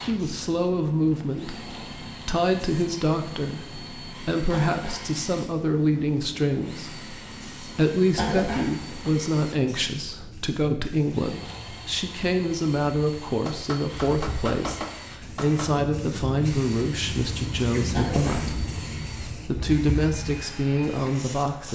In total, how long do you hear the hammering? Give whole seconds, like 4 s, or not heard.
2 s.